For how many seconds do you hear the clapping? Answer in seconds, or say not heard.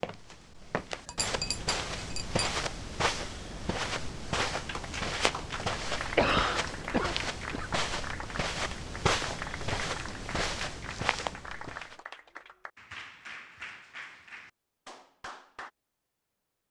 11 s.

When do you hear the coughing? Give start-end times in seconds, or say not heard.
6.2-7.7.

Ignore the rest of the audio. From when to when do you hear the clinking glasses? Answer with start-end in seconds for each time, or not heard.
1.1-2.6.